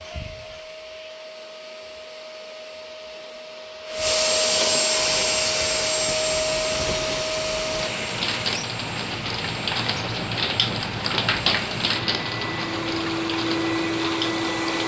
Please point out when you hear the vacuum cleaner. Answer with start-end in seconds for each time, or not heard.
0.0-14.8.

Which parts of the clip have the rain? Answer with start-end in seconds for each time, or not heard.
4.9-14.8.